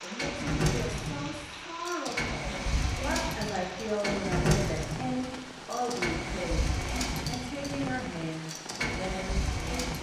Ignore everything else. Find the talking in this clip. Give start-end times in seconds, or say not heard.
0.0-9.9.